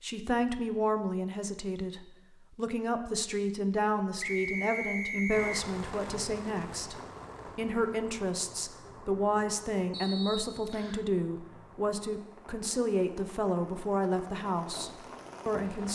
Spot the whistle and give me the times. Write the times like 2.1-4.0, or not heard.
4.2-5.7, 9.9-11.1.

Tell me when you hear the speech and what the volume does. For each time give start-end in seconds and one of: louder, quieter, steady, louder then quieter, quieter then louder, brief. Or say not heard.
0.0-15.8 steady.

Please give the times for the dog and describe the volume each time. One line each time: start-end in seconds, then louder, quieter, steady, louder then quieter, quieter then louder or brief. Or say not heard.
not heard.